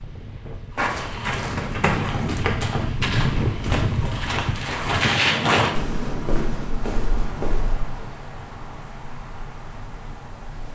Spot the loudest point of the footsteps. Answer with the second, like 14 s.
5 s.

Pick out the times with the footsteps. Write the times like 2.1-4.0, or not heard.
0.8-8.1.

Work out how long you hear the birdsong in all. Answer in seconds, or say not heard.
not heard.